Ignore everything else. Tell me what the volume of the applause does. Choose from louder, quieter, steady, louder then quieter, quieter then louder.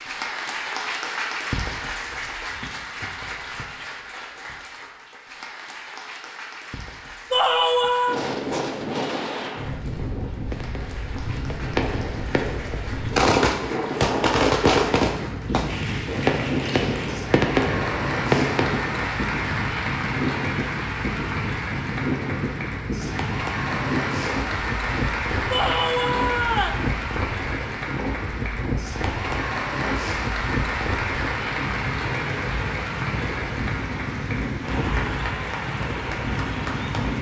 quieter then louder.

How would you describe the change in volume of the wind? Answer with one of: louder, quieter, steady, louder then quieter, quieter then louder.
steady.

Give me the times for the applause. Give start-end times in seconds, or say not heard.
0.0-37.1.